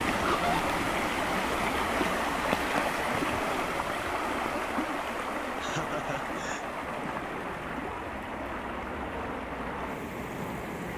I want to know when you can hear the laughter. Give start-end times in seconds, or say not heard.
0.1-0.8, 5.6-6.6.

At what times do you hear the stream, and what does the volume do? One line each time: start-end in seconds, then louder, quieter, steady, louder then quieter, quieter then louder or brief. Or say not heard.
0.0-10.9 quieter.